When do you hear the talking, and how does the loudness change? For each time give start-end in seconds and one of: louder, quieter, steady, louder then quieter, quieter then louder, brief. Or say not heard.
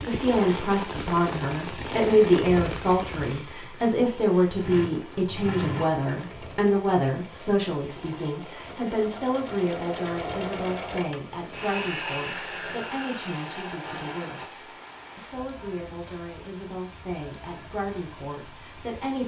0.0-19.2 quieter.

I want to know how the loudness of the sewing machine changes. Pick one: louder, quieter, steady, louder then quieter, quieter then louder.
quieter then louder.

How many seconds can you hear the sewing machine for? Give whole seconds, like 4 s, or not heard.
10 s.